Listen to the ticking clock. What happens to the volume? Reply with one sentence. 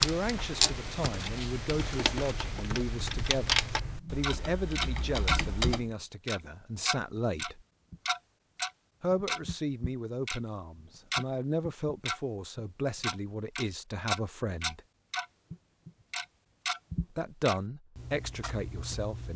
The volume of the ticking clock goes down.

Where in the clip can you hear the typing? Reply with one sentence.
You can hear the typing from 0.0 to 5.9 s.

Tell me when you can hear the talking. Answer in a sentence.
You can hear the talking from 0.0 to 7.6 s, from 9.0 to 14.8 s and from 17.1 to 19.3 s.